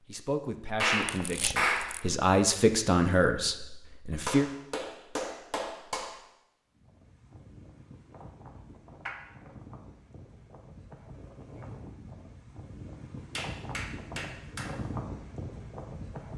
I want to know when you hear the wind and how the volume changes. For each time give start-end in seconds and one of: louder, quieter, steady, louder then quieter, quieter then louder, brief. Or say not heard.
6.7-16.3 louder.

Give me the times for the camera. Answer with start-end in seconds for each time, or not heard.
1.0-2.0.